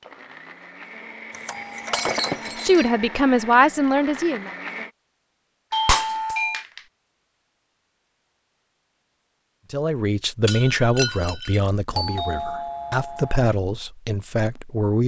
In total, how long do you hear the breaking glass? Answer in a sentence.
The breaking glass can be heard for 3 seconds in total.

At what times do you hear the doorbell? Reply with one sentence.
You can hear the doorbell from 1.3 to 2.3 s, from 5.7 to 6.7 s and from 11.9 to 13.5 s.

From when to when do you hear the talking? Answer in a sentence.
The talking can be heard from 2.6 to 4.5 s and from 9.7 to 15.0 s.